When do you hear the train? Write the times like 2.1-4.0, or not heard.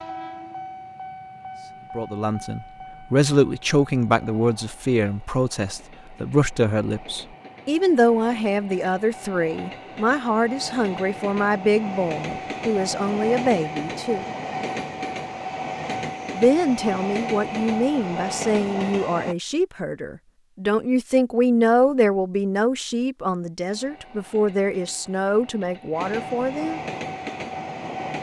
0.0-19.4, 23.6-28.1.